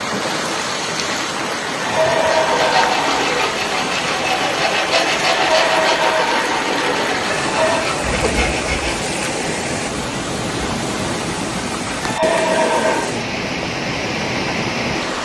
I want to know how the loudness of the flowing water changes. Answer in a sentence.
The loudness of the flowing water stays about the same.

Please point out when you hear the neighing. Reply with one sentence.
The neighing can be heard from 1.8 to 3.5 s, from 5.4 to 7.8 s and from 12.0 to 13.1 s.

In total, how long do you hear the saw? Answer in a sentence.
You can hear the saw for 7 seconds altogether.